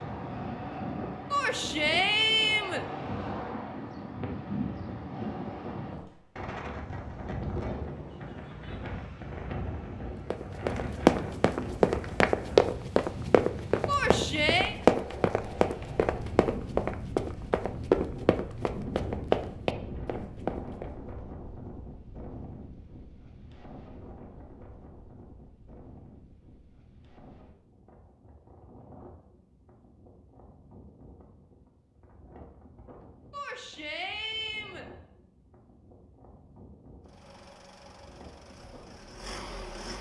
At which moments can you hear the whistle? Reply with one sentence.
You can't hear the whistle here.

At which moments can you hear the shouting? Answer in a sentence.
You can hear the shouting from 1.3 to 2.9 s, from 13.8 to 14.8 s and from 33.3 to 34.9 s.